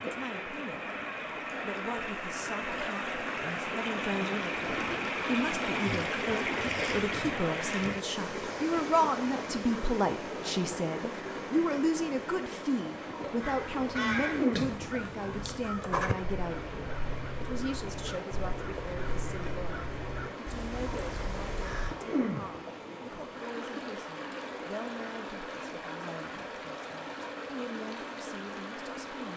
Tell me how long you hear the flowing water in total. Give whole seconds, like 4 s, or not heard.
29 s.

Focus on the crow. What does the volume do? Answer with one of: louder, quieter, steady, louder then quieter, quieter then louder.
quieter.